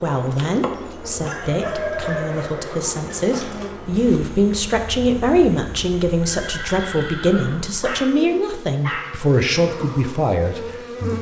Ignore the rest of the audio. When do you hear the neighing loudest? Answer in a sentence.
The volume of the neighing peaks at 2 seconds.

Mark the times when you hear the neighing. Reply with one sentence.
You can hear the neighing from 1.4 to 2.8 s and from 6.2 to 8.0 s.